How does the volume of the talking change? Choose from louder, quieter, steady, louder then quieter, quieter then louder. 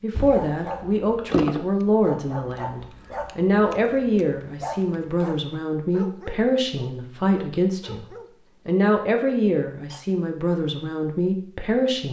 steady.